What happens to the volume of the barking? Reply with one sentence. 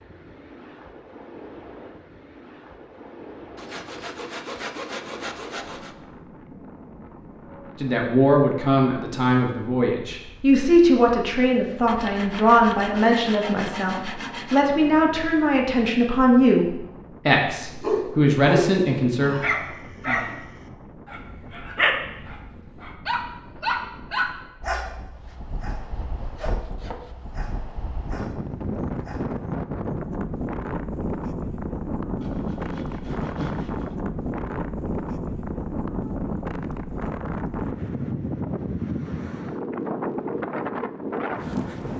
The loudness of the barking goes down.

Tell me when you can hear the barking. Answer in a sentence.
The barking can be heard from 17.8 to 29.3 s.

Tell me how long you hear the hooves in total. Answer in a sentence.
You can't hear the hooves here.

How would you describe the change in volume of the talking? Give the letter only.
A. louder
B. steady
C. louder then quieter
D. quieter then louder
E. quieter
B.